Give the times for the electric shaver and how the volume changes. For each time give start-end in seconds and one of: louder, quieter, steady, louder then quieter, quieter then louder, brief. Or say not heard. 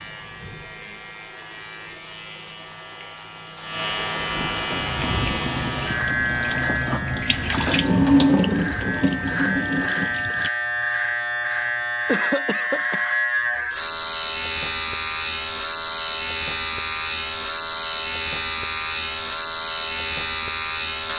0.0-21.1 louder.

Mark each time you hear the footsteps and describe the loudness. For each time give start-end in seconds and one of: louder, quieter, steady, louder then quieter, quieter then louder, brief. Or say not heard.
not heard.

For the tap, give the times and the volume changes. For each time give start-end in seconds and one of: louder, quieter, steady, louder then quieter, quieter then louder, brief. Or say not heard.
4.7-10.5 louder then quieter.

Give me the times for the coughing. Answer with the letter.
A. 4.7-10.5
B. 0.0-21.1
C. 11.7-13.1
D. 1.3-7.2
C.